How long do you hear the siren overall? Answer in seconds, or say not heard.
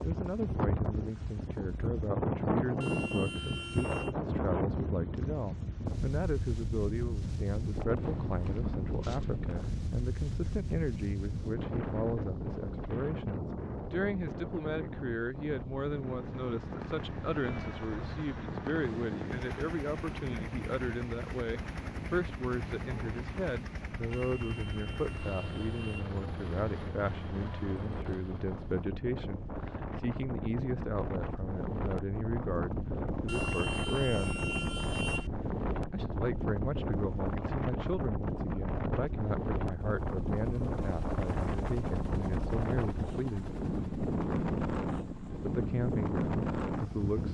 not heard.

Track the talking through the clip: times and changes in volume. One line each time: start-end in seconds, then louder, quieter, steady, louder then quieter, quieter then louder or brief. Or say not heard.
0.0-34.5 steady
35.9-43.5 steady
45.5-47.3 brief.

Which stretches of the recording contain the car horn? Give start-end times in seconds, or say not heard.
2.8-4.2, 24.1-26.1, 33.2-35.3.